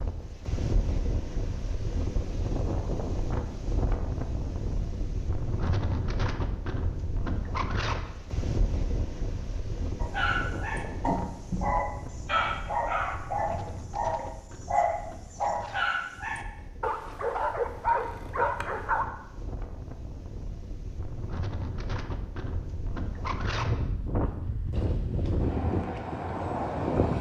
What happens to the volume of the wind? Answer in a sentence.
The loudness of the wind goes down, then up.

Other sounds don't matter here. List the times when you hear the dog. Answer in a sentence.
You can hear the dog from 10.0 to 19.1 s.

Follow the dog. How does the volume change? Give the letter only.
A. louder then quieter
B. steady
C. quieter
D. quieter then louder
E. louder
B.